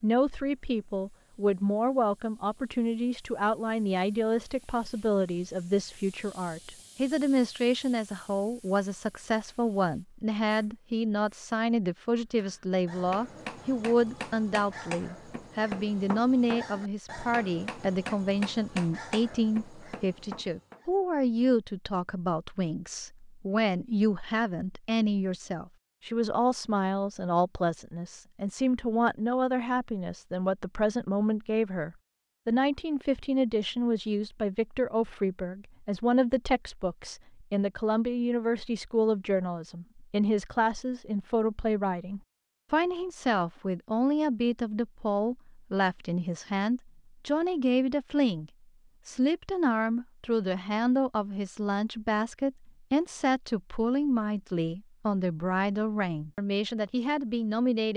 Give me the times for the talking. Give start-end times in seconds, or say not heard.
0.0-57.9.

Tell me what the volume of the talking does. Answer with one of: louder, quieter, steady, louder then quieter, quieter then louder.
steady.